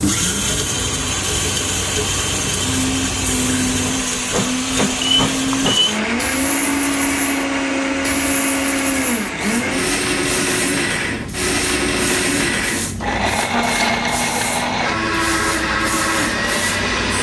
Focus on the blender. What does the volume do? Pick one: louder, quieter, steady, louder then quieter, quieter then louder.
steady.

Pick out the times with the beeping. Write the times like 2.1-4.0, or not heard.
5.0-6.0.